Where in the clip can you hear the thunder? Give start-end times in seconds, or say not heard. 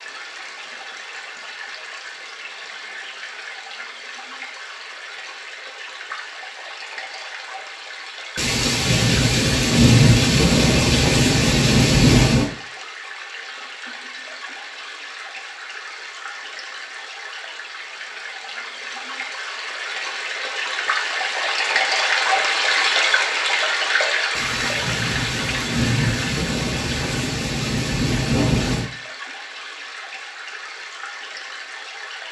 8.3-12.5, 24.4-28.9.